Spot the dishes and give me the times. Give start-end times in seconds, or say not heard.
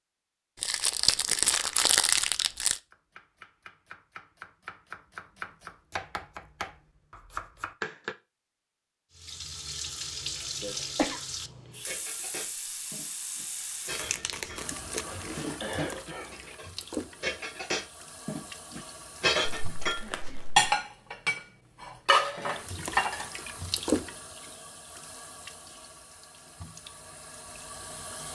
11.8-23.2.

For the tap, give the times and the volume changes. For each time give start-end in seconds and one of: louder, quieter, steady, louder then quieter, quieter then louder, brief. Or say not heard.
9.2-20.0 quieter
22.4-28.3 louder then quieter.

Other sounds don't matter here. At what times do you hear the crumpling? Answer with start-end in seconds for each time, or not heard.
0.6-2.8, 13.9-15.4, 19.4-20.8.